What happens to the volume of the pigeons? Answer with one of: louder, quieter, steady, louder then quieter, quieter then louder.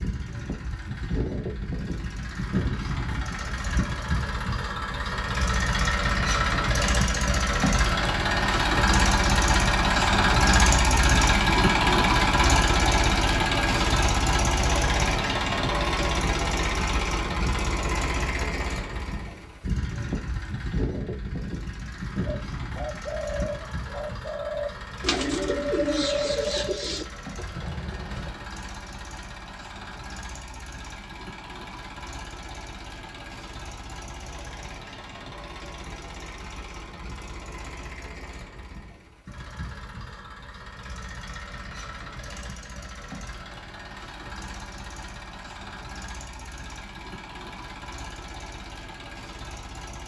louder then quieter.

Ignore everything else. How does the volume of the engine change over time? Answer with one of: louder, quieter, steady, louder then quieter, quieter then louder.
quieter.